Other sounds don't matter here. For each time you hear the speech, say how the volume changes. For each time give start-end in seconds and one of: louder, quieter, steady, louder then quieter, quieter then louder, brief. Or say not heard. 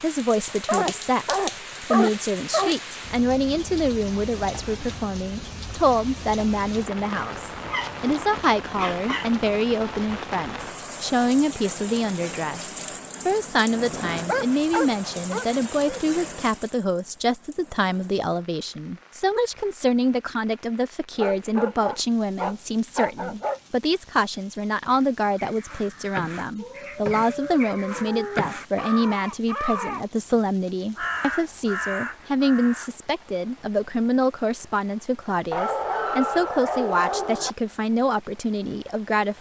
0.0-39.3 steady.